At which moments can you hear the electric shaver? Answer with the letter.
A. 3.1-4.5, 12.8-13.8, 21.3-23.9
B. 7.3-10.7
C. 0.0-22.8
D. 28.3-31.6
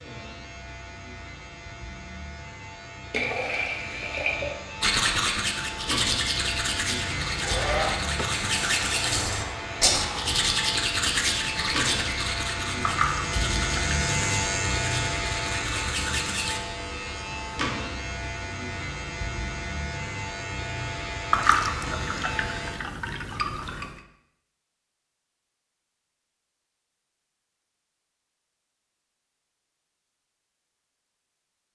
C.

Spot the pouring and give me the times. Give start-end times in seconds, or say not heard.
3.1-4.5, 12.8-13.8, 21.3-23.9.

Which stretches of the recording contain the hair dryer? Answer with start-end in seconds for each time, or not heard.
7.3-10.7.